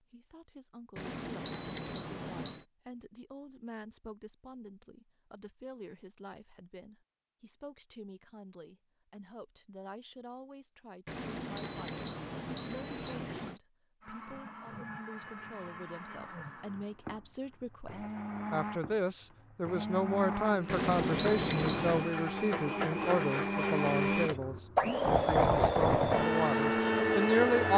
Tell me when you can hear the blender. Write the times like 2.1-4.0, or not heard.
14.0-27.7.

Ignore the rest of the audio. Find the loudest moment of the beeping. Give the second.
21 s.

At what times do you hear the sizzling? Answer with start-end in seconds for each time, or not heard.
not heard.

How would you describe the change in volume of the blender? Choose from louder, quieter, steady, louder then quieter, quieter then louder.
louder.